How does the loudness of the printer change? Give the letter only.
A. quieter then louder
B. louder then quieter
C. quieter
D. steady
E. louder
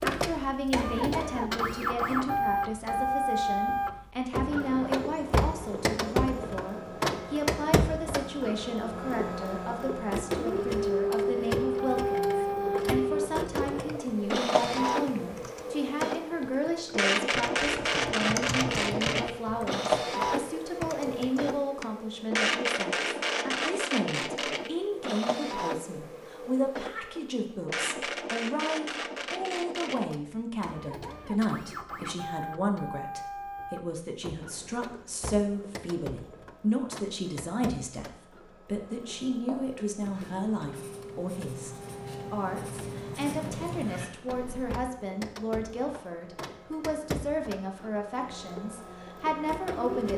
C.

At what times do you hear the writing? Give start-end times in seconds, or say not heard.
39.3-44.9.